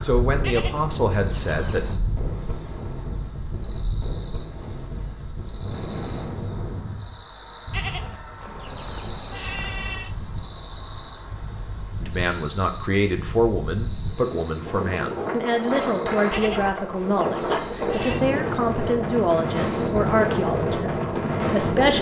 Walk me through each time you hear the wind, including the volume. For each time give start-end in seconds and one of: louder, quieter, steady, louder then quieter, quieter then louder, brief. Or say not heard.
0.0-21.9 quieter then louder.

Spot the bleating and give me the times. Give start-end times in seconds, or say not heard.
0.4-2.0, 7.7-10.2, 16.3-18.2.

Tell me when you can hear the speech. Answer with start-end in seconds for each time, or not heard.
0.0-2.0, 12.0-21.9.